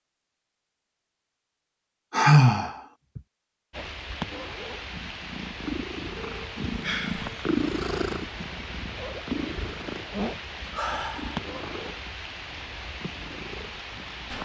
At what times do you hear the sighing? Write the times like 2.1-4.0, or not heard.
2.1-3.2, 6.3-7.5, 10.7-11.4.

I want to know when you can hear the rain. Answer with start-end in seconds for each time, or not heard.
3.7-14.4.